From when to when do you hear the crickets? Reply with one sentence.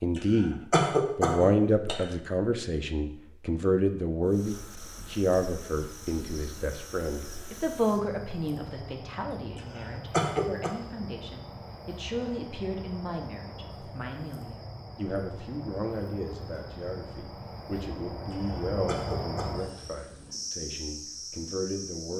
You can hear the crickets from 4.2 to 22.1 s.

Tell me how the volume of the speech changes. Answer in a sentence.
The loudness of the speech goes down.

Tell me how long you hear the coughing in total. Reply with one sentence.
You can hear the coughing for 4 seconds altogether.